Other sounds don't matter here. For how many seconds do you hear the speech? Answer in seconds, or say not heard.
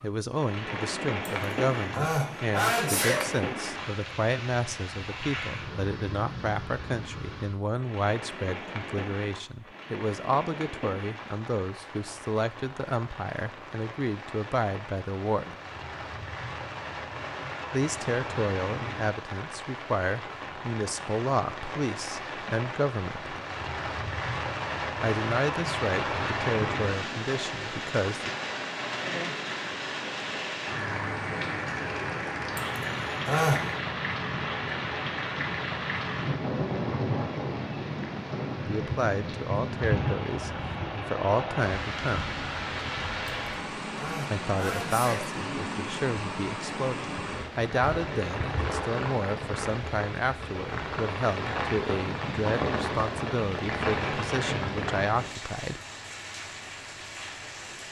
40 s.